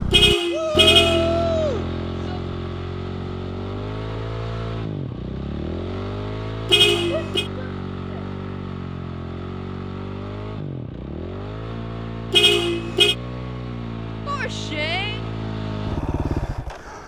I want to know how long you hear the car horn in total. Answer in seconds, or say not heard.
3 s.